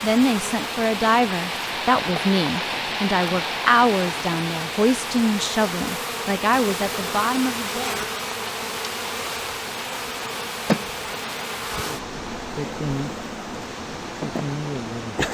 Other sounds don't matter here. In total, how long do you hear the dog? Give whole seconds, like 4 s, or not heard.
not heard.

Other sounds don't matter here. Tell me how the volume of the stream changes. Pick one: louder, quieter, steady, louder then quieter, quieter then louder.
quieter.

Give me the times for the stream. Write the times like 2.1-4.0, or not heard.
0.0-15.3.